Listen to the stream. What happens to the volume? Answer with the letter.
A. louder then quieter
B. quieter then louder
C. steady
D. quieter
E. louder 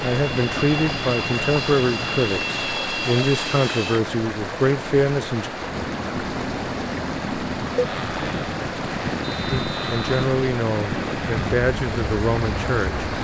C.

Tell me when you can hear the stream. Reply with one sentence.
The stream can be heard from 0.0 to 13.1 s.